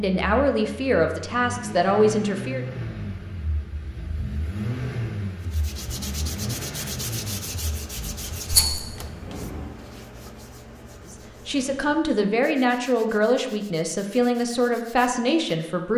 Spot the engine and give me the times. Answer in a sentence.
You can hear the engine from 0.2 to 9.8 s.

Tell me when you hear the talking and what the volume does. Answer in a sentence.
You can hear the talking briefly from 0.0 to 2.6 s; and from 11.1 to 15.9 s, at a steady volume.